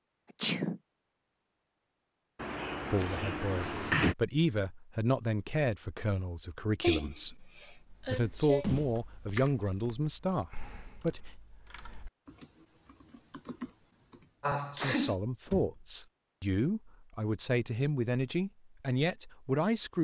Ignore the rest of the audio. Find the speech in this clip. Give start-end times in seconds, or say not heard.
2.9-11.3, 14.8-19.9.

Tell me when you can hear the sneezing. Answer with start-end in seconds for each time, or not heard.
0.4-0.8, 6.8-8.7, 14.4-15.2.